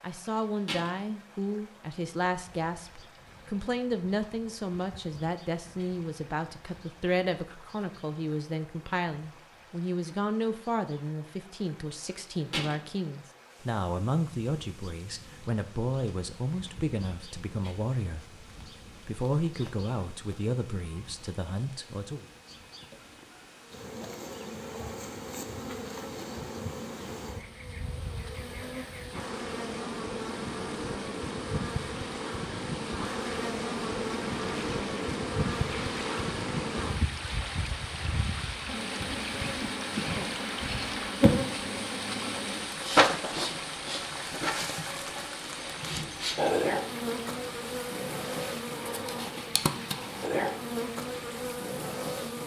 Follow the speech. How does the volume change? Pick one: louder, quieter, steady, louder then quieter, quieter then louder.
steady.